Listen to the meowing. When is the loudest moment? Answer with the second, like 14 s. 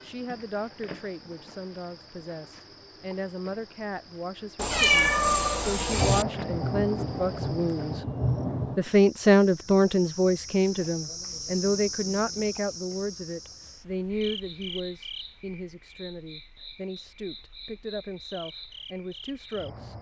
5 s.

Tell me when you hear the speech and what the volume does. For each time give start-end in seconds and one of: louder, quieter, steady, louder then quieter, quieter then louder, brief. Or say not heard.
0.0-8.1 louder
8.8-19.9 quieter.